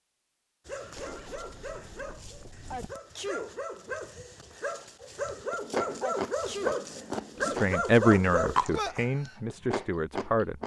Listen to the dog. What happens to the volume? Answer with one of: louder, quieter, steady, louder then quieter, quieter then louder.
louder.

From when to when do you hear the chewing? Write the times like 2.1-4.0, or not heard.
4.8-10.6.